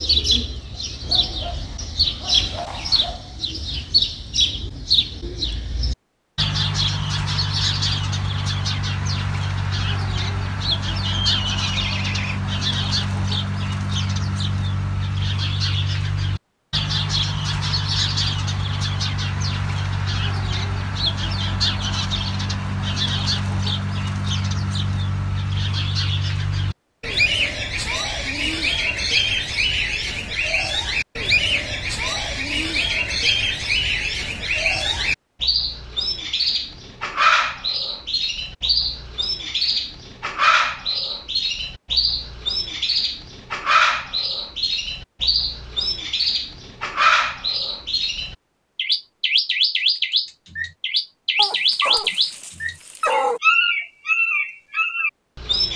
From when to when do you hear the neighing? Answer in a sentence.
The neighing can be heard from 11.0 to 12.4 s.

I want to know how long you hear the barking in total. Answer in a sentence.
The barking can be heard for 5 seconds in total.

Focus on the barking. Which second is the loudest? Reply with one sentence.
The volume of the barking peaks at 53 seconds.